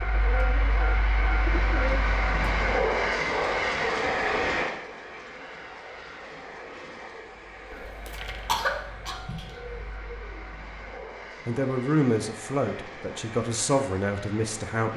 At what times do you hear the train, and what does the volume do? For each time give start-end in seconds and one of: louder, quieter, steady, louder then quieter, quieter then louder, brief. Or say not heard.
0.0-14.9 quieter.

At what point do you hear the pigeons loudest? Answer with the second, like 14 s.
2 s.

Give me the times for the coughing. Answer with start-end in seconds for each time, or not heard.
8.2-9.9.